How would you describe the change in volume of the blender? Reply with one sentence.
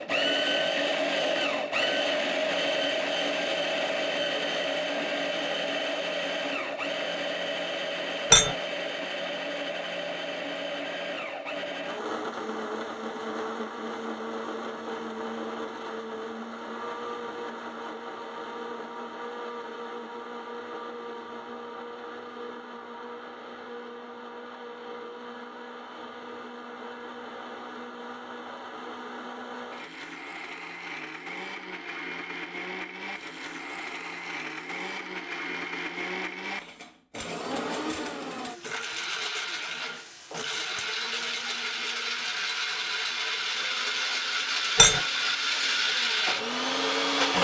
The loudness of the blender goes down, then up.